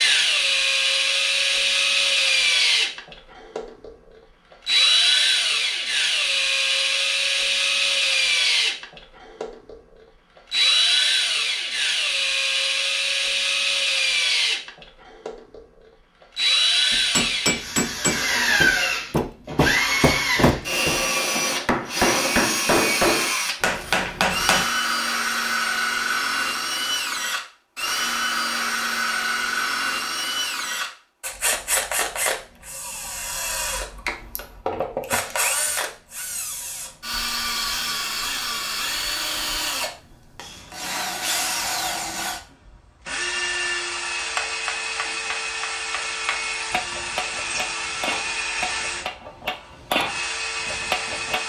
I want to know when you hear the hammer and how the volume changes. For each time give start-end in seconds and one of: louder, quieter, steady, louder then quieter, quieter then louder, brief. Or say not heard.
16.9-24.6 steady
44.4-51.4 louder.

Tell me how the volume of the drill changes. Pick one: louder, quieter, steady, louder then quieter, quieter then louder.
quieter.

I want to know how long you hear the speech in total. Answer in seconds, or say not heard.
not heard.